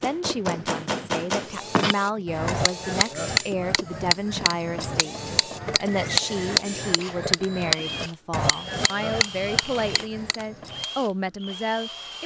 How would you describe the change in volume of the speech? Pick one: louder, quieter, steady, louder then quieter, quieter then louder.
steady.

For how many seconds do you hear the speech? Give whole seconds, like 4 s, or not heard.
12 s.